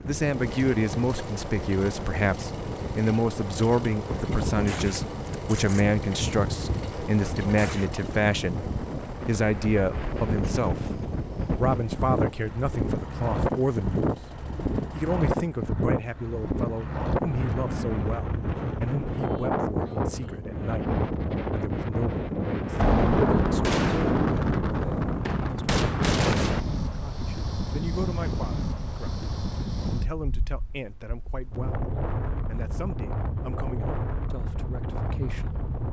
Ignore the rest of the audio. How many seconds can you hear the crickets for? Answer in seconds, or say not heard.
not heard.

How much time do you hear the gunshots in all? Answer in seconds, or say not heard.
8 s.